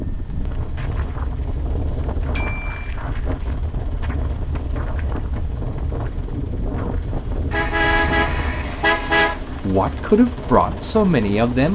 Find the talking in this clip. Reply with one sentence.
The talking can be heard from 9.4 to 11.7 s.